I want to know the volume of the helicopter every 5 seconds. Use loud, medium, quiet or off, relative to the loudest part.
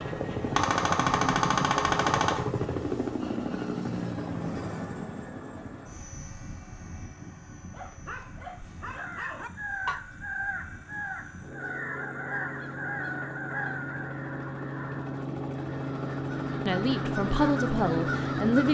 loud, quiet, medium, loud.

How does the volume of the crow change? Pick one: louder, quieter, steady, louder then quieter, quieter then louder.
quieter then louder.